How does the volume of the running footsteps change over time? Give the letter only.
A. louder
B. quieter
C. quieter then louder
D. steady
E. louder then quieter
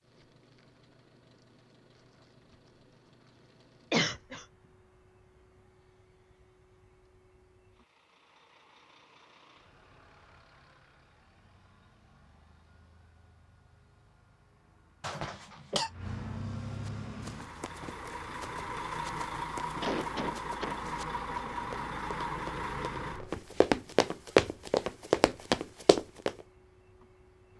A.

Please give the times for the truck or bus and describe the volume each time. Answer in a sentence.
The truck or bus can be heard from 0.0 to 27.5 s, getting louder.